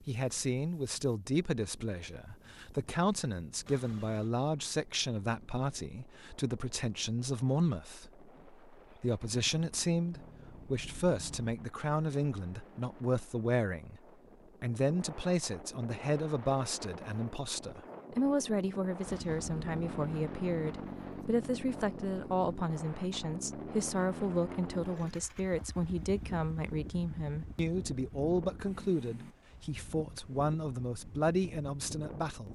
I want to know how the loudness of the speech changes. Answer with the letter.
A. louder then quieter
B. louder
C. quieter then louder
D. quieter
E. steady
E.